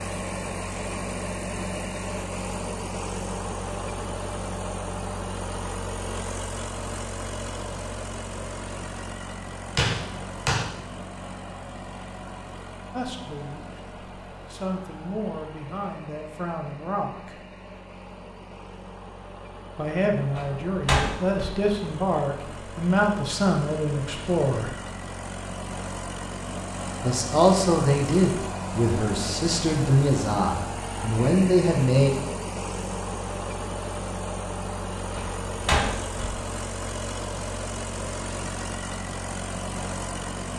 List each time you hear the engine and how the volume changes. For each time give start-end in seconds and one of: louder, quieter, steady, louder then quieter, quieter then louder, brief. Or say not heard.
0.0-40.5 quieter then louder.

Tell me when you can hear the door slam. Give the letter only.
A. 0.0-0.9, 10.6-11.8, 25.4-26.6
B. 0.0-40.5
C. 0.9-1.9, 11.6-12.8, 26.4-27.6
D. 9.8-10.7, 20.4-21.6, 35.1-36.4
D.